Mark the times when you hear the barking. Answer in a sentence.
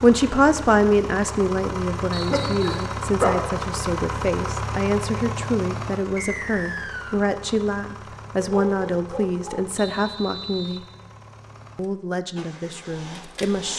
The barking can be heard from 2.2 to 3.5 s and from 8.3 to 9.7 s.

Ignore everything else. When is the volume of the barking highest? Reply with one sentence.
The loudest moment of the barking is at 3 seconds.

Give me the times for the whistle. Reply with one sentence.
The whistle can be heard from 2.1 to 3.0 s, from 6.2 to 7.3 s and from 9.8 to 10.8 s.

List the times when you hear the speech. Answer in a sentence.
You can hear the speech from 0.0 to 10.8 s and from 11.8 to 13.7 s.